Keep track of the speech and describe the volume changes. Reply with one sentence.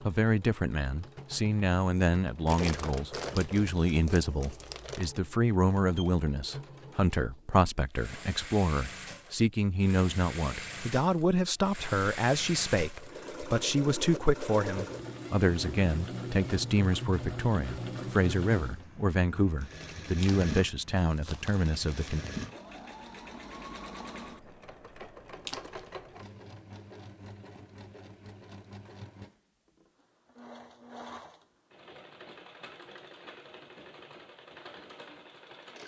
The loudness of the speech stays about the same.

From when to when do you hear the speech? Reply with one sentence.
The speech can be heard from 0.0 to 22.2 s.